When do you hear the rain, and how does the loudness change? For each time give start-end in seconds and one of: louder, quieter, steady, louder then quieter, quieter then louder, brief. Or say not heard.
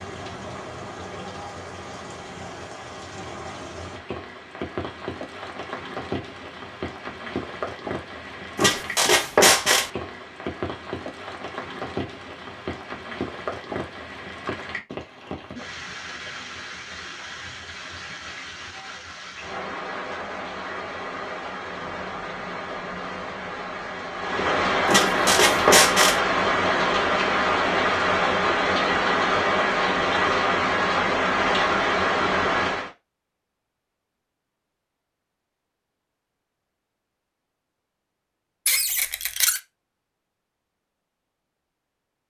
0.0-32.9 louder.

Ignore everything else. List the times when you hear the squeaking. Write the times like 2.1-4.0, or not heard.
8.6-9.9, 24.9-26.2, 38.6-39.6.